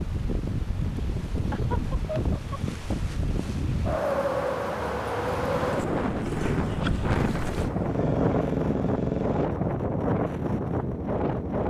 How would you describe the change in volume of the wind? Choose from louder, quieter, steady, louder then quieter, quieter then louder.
steady.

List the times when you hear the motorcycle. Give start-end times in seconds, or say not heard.
5.2-9.5.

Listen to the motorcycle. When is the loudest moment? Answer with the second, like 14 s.
9 s.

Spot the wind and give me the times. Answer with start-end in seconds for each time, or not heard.
0.0-11.6.